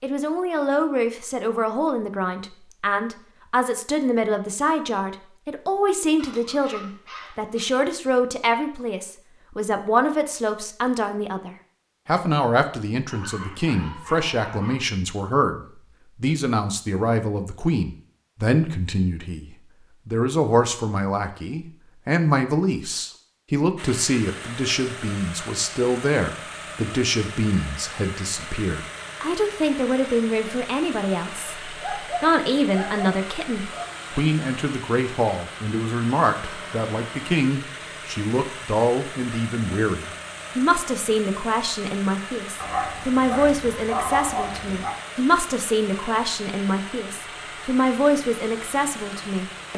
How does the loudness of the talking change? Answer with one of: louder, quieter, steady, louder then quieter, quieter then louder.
steady.